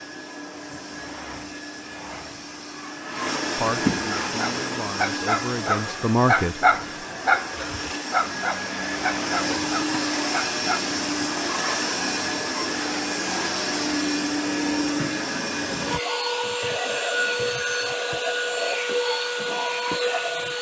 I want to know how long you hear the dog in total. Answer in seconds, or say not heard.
7 s.